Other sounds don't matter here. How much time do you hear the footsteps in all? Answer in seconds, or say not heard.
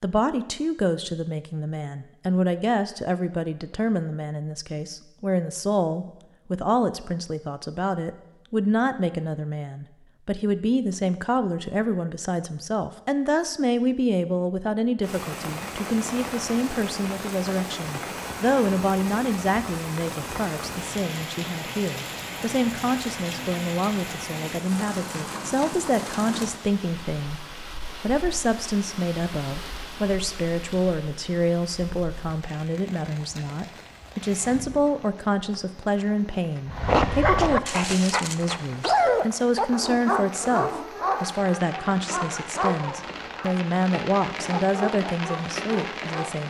not heard.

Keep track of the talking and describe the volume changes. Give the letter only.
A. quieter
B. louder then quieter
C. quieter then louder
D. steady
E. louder
D.